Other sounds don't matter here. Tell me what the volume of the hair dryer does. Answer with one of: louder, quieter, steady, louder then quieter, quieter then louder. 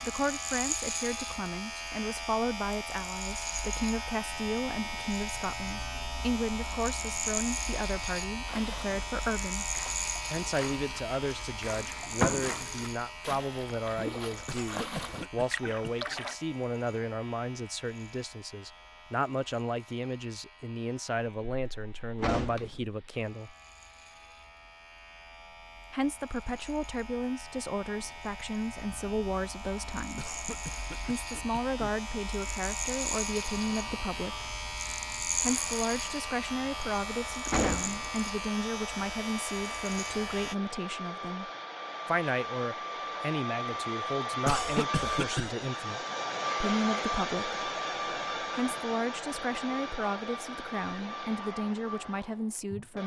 louder then quieter.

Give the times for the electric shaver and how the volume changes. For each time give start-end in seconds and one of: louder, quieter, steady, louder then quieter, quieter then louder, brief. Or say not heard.
0.0-40.5 quieter then louder.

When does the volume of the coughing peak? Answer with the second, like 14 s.
45 s.